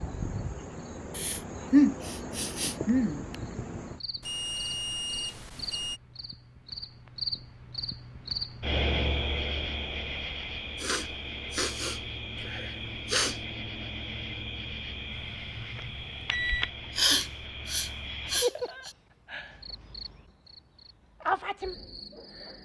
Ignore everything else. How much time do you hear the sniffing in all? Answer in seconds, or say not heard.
7 s.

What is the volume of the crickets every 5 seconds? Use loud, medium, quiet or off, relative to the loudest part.
medium, loud, loud, loud, loud.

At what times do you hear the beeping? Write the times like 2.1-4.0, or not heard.
4.2-6.0, 15.1-16.7.